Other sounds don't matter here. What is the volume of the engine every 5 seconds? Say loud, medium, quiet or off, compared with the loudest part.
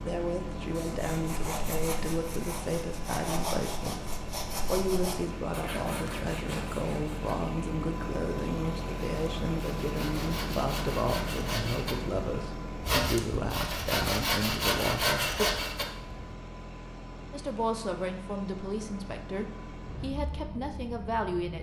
loud, loud, loud, medium, medium.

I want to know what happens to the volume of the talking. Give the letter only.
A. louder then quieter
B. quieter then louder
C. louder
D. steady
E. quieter
D.